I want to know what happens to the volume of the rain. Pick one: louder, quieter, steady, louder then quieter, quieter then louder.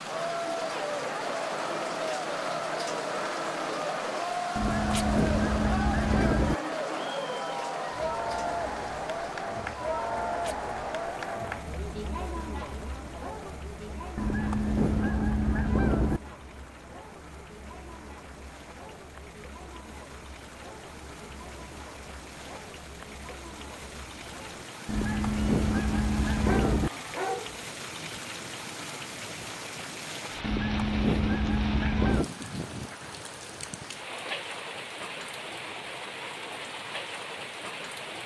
quieter then louder.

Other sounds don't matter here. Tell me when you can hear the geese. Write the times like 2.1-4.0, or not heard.
4.5-6.5, 14.2-16.2, 24.9-26.9, 30.4-32.2.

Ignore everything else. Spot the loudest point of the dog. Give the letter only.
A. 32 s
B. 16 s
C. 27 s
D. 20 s
C.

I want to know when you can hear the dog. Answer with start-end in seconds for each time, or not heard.
26.4-28.2.